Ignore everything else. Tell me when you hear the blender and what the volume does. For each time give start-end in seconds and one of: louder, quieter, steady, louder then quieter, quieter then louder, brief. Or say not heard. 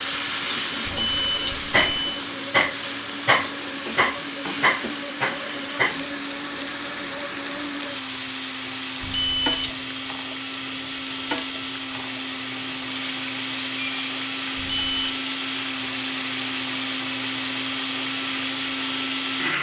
0.0-19.5 louder.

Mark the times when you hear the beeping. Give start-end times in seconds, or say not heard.
0.8-2.2, 9.0-9.7, 14.6-15.1.